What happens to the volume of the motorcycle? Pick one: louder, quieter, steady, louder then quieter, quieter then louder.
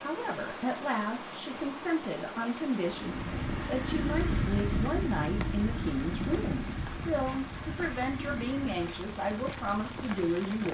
quieter.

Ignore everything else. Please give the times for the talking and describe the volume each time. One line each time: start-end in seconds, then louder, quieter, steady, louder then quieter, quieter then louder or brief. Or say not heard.
0.0-10.6 steady.